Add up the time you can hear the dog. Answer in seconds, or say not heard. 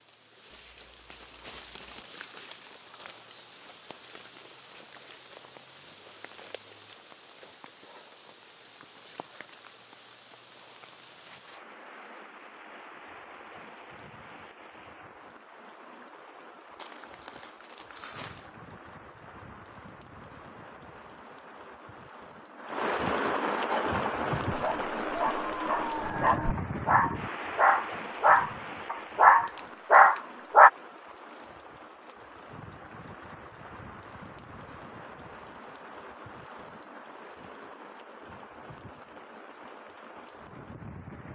7 s.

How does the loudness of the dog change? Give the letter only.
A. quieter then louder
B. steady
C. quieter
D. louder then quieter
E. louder
E.